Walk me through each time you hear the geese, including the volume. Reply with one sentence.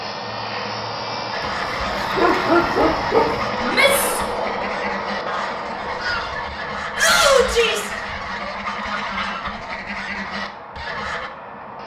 The geese can be heard from 1.3 to 11.3 s, at a steady volume.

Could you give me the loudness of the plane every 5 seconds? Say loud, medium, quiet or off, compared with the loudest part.
loud, medium, medium.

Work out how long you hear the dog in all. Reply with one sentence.
The dog can be heard for 2 seconds in total.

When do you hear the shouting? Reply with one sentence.
The shouting can be heard from 3.6 to 4.2 s and from 7.0 to 7.9 s.